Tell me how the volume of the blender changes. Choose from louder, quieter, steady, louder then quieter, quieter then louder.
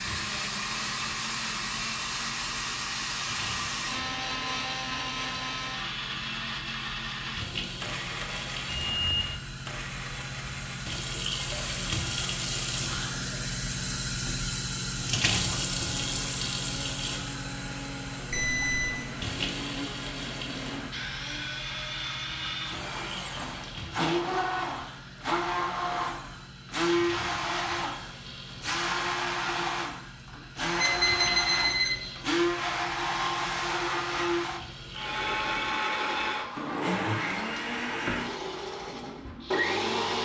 quieter then louder.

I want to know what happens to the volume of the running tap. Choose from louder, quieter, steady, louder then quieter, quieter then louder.
louder then quieter.